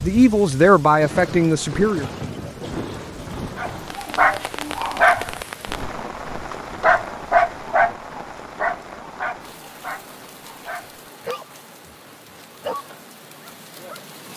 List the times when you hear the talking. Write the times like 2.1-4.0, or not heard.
0.0-2.1.